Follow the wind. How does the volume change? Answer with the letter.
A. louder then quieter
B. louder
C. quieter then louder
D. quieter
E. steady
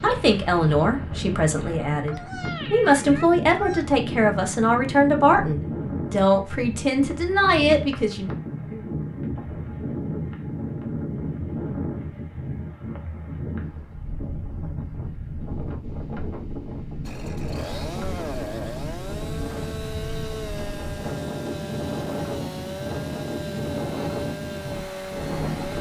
E.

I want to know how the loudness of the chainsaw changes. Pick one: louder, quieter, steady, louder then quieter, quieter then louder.
steady.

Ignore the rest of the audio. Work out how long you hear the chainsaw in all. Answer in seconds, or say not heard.
9 s.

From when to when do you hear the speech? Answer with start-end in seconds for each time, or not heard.
0.0-8.3.